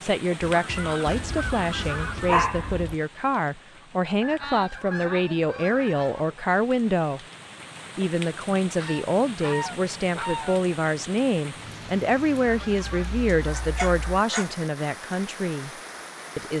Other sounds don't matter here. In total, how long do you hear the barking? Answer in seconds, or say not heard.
3 s.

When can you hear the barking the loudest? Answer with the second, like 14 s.
2 s.